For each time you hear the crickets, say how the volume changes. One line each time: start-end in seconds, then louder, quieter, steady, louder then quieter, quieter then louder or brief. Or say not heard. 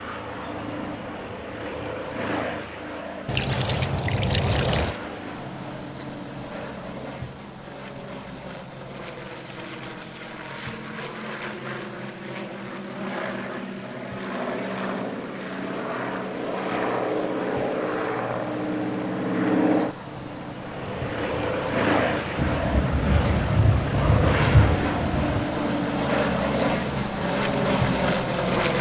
0.0-28.7 quieter then louder.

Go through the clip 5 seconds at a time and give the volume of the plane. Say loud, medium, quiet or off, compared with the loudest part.
medium, quiet, medium, loud, loud, loud.